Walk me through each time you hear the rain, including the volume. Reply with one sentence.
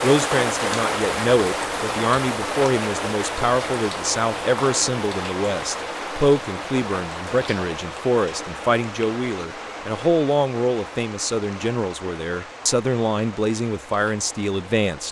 You can hear the rain from 0.0 to 15.0 s, getting quieter.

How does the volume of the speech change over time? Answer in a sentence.
The volume of the speech stays about the same.